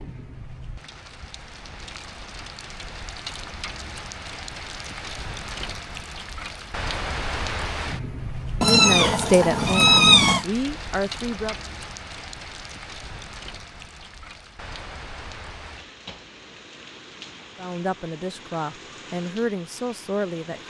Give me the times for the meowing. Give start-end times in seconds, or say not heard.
8.6-10.4.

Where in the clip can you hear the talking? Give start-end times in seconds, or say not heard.
8.6-11.6, 17.6-20.6.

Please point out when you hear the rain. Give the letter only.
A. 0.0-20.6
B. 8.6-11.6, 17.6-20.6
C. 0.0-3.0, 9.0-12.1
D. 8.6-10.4
A.